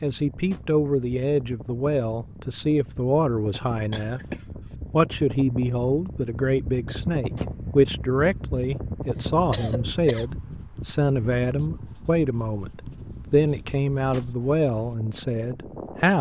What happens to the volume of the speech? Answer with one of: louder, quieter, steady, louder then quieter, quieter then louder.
steady.